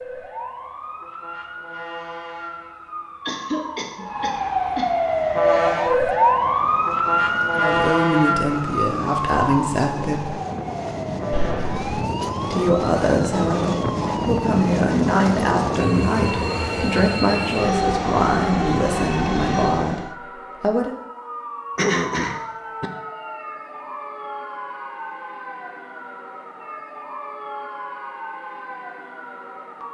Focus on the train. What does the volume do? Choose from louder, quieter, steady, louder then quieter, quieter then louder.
louder.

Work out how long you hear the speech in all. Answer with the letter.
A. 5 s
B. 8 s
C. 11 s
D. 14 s
C.